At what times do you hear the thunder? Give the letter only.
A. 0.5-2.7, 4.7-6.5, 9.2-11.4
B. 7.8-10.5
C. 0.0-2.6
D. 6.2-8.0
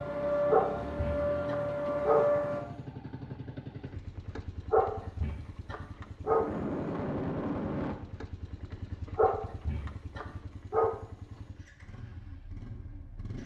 D.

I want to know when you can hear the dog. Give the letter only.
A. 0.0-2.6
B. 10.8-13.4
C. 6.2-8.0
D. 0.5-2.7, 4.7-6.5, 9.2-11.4
D.